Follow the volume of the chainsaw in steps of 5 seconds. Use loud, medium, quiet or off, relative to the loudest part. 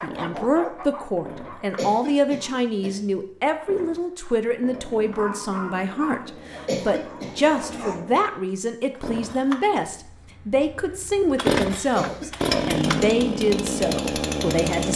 quiet, quiet, loud.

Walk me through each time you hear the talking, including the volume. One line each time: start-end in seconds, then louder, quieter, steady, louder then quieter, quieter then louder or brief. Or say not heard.
0.0-14.9 steady.